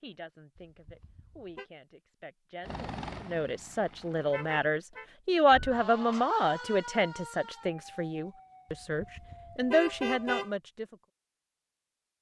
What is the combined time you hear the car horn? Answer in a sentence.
The car horn can be heard for 4 seconds in total.